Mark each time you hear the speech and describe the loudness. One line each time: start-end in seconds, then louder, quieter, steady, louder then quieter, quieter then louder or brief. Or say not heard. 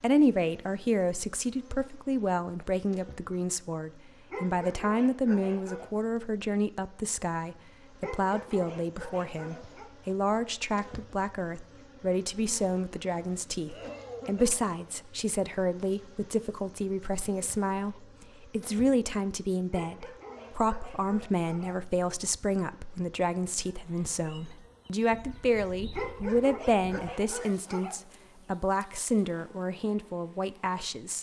0.0-31.1 steady.